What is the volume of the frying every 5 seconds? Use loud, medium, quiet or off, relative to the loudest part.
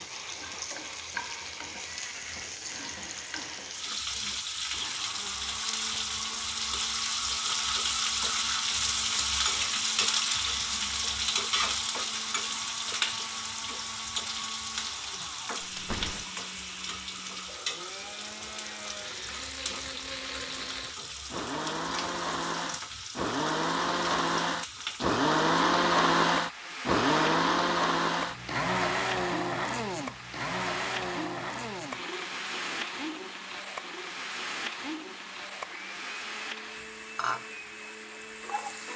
medium, loud, loud, medium, medium, medium, medium, medium.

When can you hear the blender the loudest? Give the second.
26 s.